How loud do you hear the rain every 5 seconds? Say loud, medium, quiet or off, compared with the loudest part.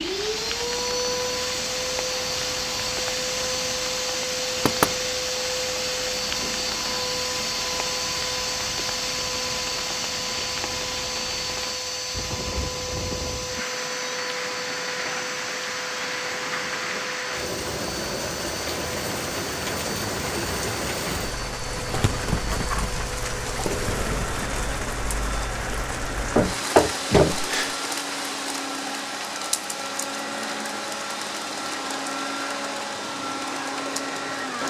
medium, medium, medium, loud, loud, loud, medium.